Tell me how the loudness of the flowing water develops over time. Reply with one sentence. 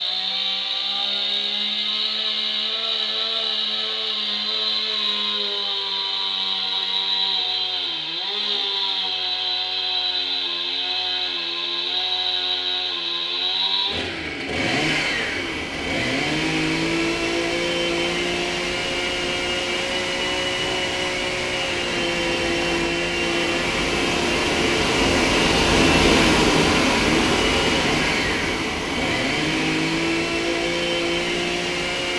The volume of the flowing water goes up, then down.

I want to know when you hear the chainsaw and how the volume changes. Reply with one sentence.
The chainsaw can be heard from 0.0 to 32.1 s, at a steady volume.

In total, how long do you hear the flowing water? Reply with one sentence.
The flowing water can be heard for 17 seconds in total.